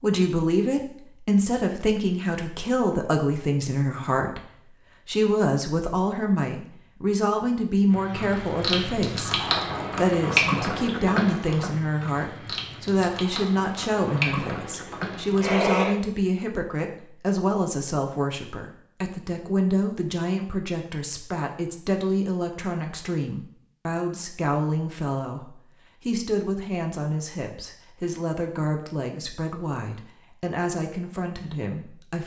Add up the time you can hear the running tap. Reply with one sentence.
The running tap can be heard for 8 seconds in total.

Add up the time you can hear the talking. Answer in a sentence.
The talking can be heard for 32 seconds in total.